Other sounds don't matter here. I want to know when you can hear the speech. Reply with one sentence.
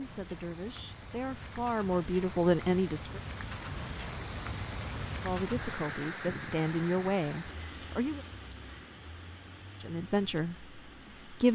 The speech can be heard from 0.0 to 3.2 s, from 5.2 to 8.2 s and from 9.8 to 11.4 s.